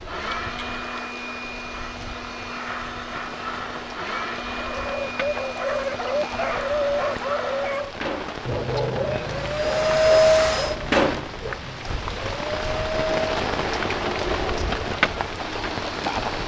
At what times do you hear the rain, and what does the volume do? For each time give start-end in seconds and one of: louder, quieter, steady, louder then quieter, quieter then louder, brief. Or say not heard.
0.0-16.4 louder.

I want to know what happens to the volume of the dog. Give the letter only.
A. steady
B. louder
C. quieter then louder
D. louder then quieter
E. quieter
E.